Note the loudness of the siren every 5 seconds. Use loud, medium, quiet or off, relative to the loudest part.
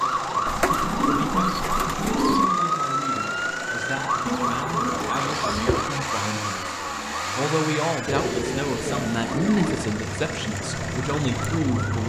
loud, medium, medium.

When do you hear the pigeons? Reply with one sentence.
The pigeons can be heard from 0.5 to 2.5 s, from 4.2 to 5.8 s and from 8.1 to 9.9 s.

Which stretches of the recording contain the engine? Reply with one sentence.
The engine can be heard from 0.0 to 12.0 s.